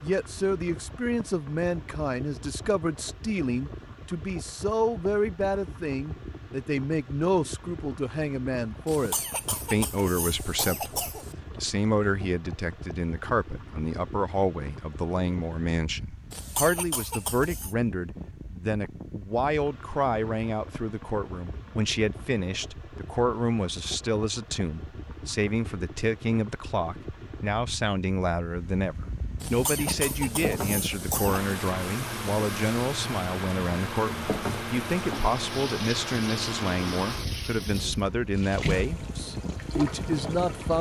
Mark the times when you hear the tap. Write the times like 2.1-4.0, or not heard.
29.6-40.7.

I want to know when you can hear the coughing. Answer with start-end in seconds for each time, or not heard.
8.8-11.3, 16.3-17.8, 29.4-31.4.